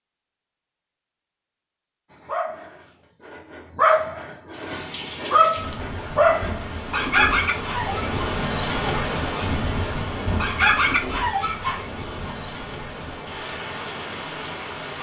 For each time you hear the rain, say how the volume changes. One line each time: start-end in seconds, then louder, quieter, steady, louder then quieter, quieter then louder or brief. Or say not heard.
4.5-14.9 louder then quieter.